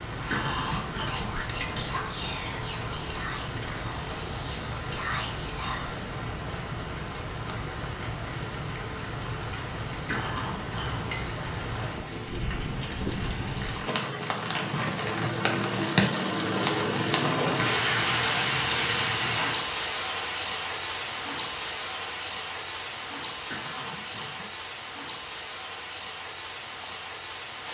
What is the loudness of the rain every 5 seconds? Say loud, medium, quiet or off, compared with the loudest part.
medium, medium, medium, loud, medium, medium.